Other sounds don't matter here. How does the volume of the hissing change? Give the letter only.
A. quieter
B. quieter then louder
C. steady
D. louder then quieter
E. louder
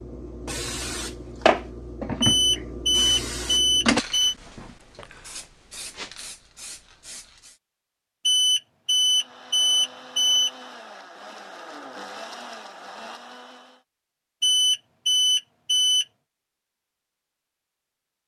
A.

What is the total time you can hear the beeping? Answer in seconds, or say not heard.
6 s.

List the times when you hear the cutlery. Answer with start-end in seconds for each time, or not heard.
not heard.